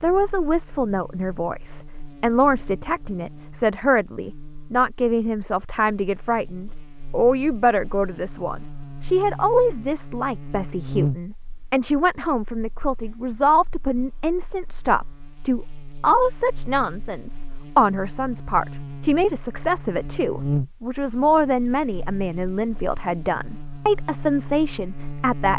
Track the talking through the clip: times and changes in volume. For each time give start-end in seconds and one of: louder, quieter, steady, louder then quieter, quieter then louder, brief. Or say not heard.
0.0-25.5 steady.